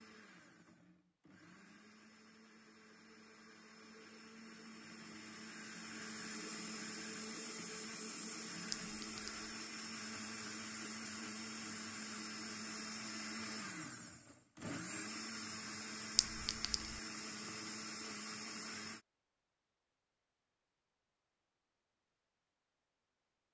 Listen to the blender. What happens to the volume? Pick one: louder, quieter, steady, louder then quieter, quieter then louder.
louder.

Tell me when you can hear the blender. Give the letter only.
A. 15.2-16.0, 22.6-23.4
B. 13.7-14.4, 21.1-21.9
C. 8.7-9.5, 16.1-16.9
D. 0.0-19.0
D.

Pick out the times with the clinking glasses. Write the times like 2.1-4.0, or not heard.
8.7-9.5, 16.1-16.9.